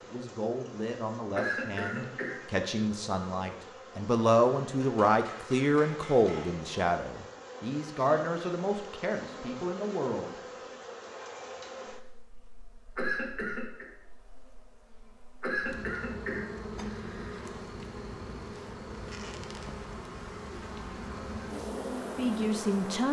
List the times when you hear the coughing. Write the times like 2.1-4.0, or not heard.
1.4-2.4, 12.9-13.8, 15.4-17.4.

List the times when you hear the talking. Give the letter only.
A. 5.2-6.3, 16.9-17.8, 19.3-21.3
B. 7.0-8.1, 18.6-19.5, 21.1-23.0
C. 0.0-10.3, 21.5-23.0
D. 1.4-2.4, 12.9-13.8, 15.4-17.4
C.